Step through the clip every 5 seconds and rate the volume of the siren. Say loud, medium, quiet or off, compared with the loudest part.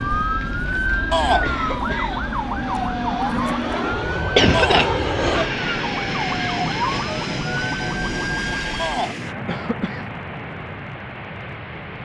loud, loud, off.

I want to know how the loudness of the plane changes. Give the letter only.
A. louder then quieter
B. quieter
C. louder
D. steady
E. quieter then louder
A.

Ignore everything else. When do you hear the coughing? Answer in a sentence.
The coughing can be heard from 0.4 to 2.3 s, from 4.3 to 5.5 s and from 9.4 to 10.1 s.